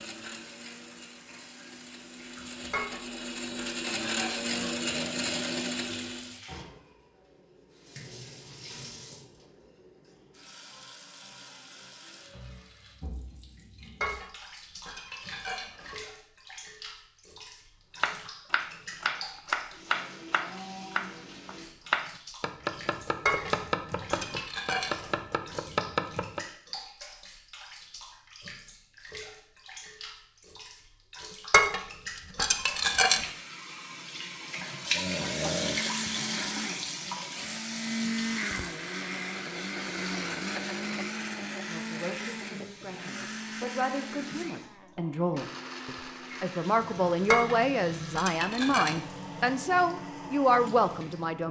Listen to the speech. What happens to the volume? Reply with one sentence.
The loudness of the speech goes up.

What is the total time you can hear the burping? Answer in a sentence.
The burping can be heard for 2 seconds in total.